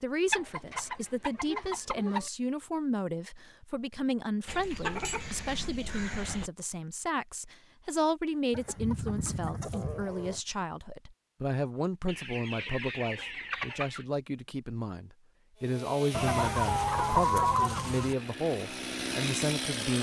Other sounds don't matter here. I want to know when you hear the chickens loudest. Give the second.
17 s.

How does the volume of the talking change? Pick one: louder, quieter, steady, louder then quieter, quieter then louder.
steady.